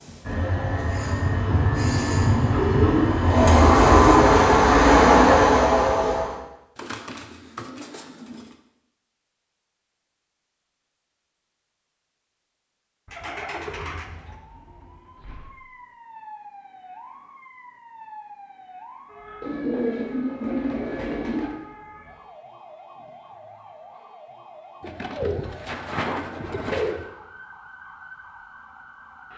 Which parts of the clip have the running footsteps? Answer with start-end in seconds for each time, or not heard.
not heard.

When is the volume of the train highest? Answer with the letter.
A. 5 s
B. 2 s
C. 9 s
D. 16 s
A.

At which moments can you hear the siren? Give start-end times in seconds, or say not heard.
13.7-29.3.